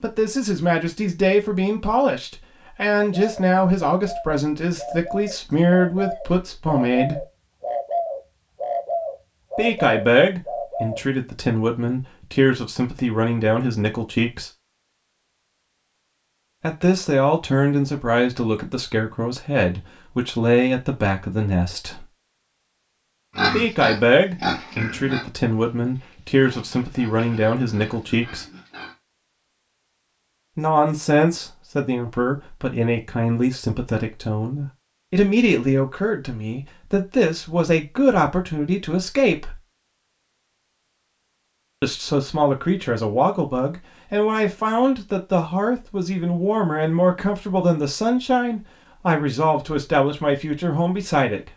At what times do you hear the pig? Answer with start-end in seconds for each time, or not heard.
23.4-28.9.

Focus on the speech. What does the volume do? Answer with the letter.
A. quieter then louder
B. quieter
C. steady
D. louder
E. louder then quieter
C.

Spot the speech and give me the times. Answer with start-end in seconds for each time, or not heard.
0.0-7.2, 9.6-14.5, 16.6-22.1, 23.5-28.4, 30.6-39.5, 41.8-51.5.